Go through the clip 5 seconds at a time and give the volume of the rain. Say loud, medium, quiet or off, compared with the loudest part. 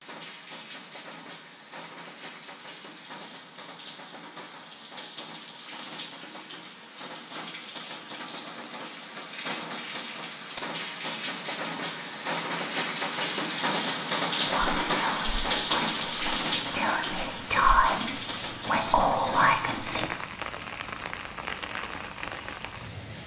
quiet, medium, loud, loud, medium.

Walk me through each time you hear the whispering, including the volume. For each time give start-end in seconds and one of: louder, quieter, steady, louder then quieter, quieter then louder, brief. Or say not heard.
14.4-20.1 louder.